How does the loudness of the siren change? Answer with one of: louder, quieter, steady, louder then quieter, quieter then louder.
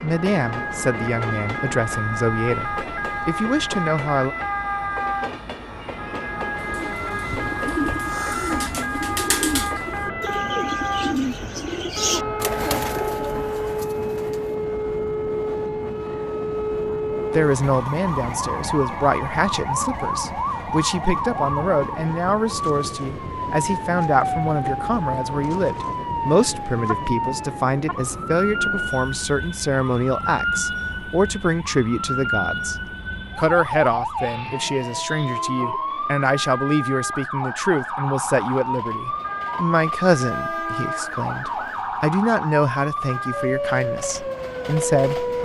steady.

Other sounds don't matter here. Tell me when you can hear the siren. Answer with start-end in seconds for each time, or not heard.
0.0-45.3.